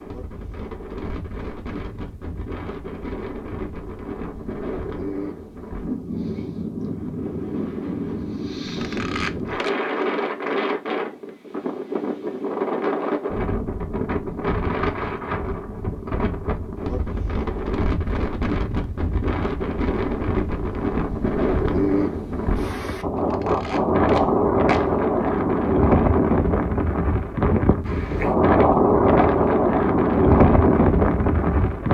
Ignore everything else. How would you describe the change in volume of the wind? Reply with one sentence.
The loudness of the wind goes up.